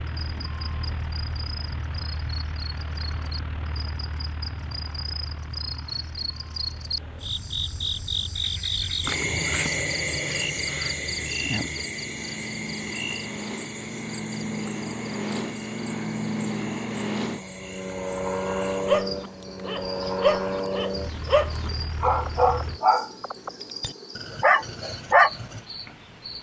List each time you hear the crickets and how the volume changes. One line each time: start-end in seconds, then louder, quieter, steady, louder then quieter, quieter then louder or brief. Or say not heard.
0.0-26.3 louder then quieter.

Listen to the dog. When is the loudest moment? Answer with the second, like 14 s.
25 s.